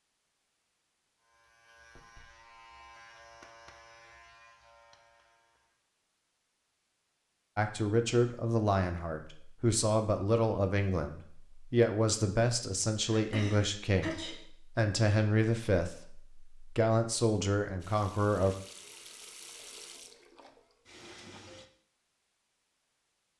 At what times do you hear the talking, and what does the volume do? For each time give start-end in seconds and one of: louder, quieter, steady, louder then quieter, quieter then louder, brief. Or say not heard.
7.5-18.6 steady.